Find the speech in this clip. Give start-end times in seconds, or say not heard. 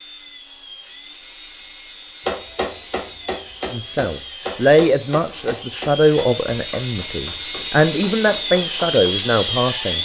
3.7-9.9.